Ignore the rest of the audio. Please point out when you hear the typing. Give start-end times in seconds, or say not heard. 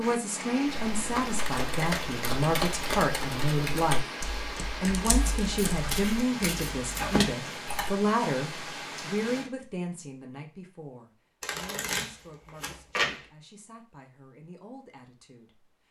0.8-8.0.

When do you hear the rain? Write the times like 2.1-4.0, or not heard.
0.0-9.5.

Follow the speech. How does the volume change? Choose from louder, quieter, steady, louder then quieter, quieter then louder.
quieter.